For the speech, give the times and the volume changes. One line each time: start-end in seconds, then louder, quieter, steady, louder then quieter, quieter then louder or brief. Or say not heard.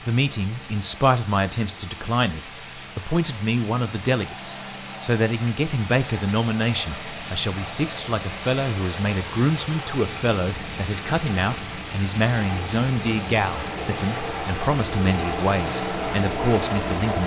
0.1-17.2 steady.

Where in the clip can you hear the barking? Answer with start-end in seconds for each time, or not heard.
not heard.